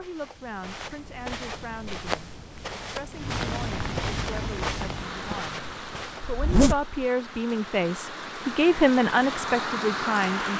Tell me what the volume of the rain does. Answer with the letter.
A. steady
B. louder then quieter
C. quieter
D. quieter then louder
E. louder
D.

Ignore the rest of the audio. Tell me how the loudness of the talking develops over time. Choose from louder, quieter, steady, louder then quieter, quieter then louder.
louder.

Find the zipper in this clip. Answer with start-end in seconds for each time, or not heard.
6.2-6.9.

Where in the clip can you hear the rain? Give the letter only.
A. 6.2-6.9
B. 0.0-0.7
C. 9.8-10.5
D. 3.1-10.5
D.